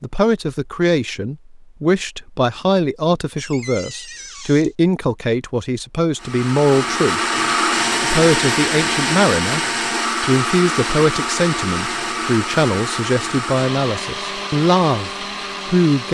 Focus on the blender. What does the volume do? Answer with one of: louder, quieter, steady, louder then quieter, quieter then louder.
quieter.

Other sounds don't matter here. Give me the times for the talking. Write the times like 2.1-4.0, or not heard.
0.0-7.2, 8.0-9.6, 10.2-16.0.